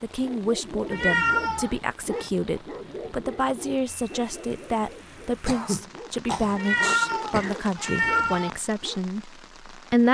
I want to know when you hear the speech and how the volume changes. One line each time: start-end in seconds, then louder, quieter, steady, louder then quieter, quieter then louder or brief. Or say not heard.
0.0-10.1 steady.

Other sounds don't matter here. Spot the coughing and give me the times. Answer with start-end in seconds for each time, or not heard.
5.5-7.6.